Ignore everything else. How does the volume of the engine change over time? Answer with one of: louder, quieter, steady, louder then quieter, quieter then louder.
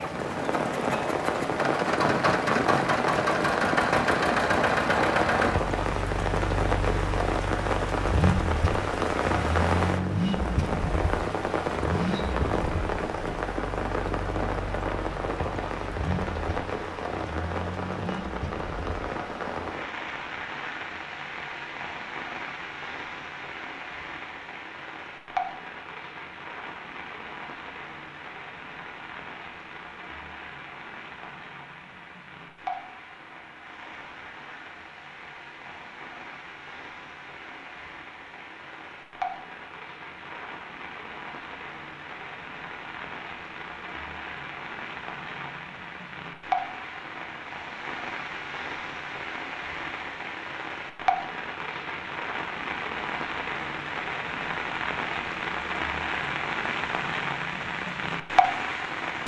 quieter.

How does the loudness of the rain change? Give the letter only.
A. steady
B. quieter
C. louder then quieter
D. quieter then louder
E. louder
D.